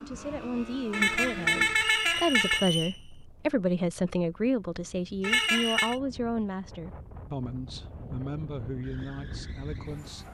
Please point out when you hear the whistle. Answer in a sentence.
You can hear the whistle from 1.9 to 3.0 s and from 5.2 to 6.0 s.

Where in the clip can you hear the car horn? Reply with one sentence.
You can hear the car horn from 0.9 to 2.7 s and from 5.2 to 6.0 s.